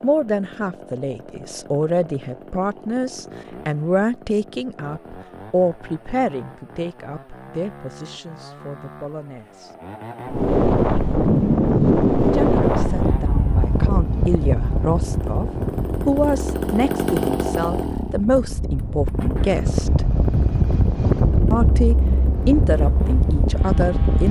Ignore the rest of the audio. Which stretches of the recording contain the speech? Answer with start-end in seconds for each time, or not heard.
0.0-9.8, 12.2-20.1, 21.5-24.2.